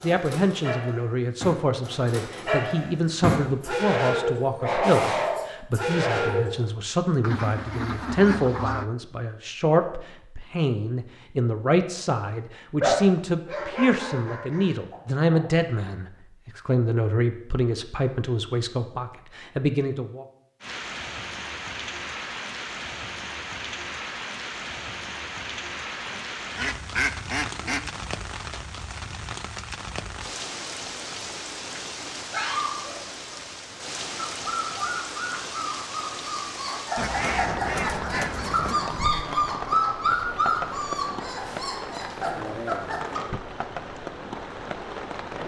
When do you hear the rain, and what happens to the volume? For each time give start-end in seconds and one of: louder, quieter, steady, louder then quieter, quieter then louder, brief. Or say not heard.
20.6-45.4 steady.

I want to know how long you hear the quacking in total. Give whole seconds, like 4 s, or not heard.
6 s.